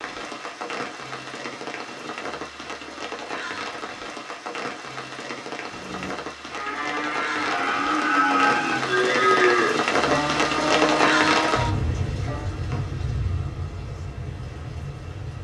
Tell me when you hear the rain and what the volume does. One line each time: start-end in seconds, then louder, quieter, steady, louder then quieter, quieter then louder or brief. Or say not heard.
0.0-15.3 louder then quieter.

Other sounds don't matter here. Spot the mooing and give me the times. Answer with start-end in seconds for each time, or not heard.
5.7-12.6.